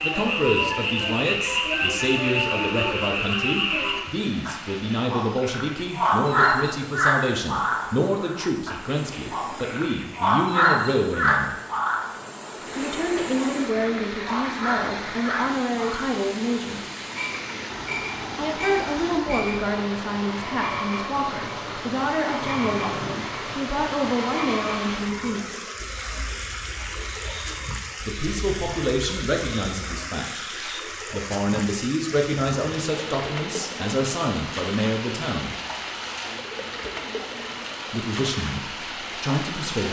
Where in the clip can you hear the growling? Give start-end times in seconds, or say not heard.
22.4-23.4.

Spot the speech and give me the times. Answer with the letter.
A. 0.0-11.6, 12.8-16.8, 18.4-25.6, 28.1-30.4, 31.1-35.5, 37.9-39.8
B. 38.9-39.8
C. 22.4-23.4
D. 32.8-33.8
A.